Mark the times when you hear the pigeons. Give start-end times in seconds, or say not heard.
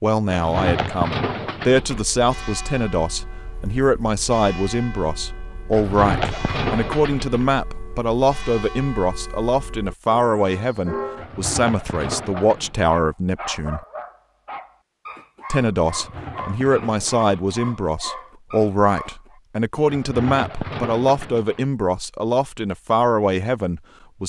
0.2-2.0, 5.7-7.5, 11.2-12.9, 15.8-17.6, 19.9-21.6.